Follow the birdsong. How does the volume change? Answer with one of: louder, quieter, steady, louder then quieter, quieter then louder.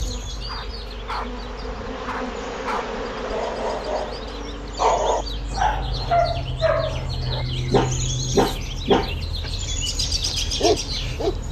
louder.